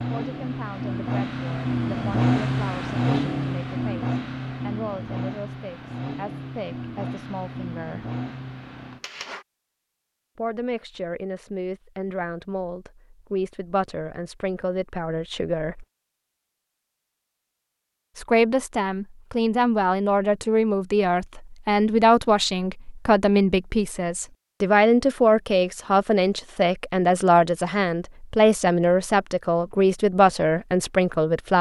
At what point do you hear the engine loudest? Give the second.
3 s.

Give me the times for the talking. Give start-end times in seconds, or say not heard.
0.1-8.1, 10.3-15.8, 18.1-31.5.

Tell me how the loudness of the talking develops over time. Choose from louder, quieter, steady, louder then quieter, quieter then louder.
louder.